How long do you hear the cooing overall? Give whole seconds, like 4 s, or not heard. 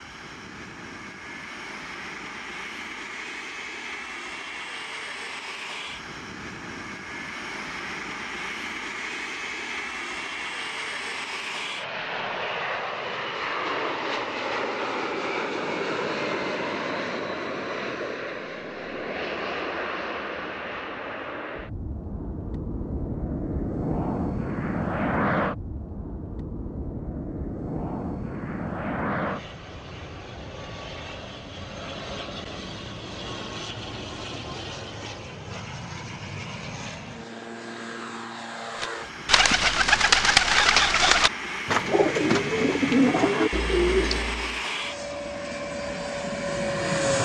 6 s.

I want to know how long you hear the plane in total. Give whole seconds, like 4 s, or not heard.
47 s.